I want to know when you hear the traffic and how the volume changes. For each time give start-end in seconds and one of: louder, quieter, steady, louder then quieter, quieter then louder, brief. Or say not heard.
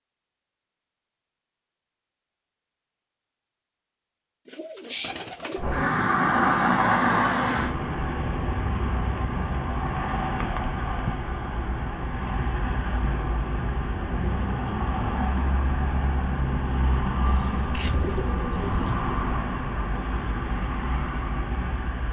5.5-22.0 quieter.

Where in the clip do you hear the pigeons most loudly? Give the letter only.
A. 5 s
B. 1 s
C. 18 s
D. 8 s
A.